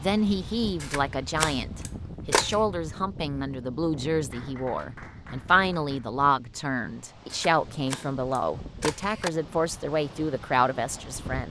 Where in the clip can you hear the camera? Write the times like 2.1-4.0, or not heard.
0.8-2.5, 7.3-9.3.